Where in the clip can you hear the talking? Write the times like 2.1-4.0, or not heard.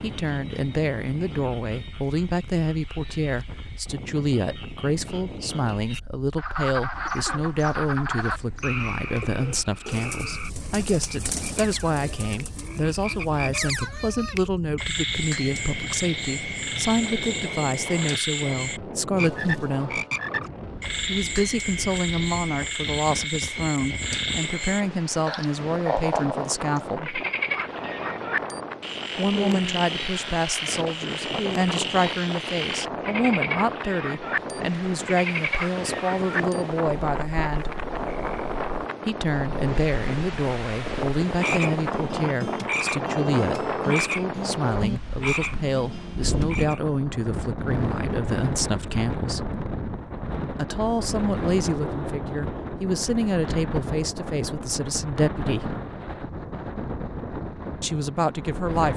0.0-20.1, 21.1-27.2, 29.1-37.8, 39.0-49.5, 50.5-55.8, 57.8-58.9.